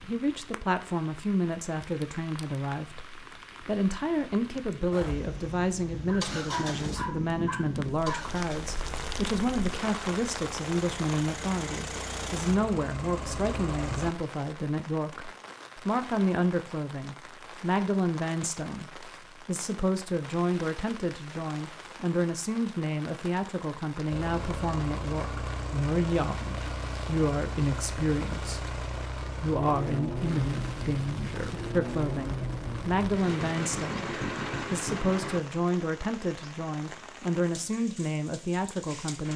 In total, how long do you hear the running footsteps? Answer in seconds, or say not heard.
not heard.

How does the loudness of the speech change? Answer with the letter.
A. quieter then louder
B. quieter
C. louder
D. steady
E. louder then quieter
D.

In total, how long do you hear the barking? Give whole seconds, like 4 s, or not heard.
2 s.